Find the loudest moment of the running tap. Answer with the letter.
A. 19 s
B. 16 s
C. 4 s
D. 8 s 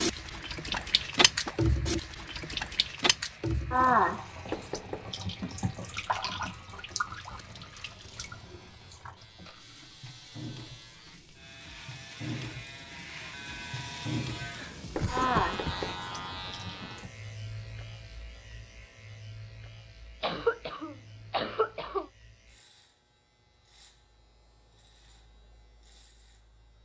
C.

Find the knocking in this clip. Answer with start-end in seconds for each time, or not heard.
4.5-5.1, 14.9-16.0.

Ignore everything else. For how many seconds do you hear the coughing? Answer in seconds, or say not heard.
4 s.